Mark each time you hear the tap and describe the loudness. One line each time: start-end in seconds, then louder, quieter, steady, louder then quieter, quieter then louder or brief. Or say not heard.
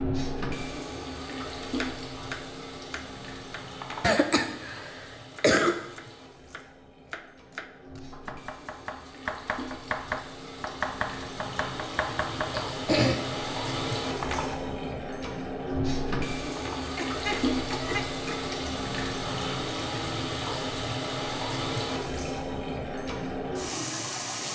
0.0-24.5 quieter then louder.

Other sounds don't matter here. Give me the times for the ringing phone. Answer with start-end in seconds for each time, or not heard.
3.7-4.2, 14.1-14.6, 16.4-16.9.